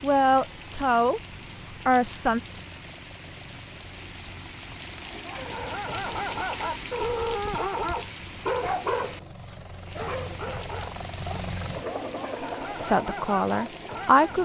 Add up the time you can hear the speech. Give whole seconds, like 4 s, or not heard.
4 s.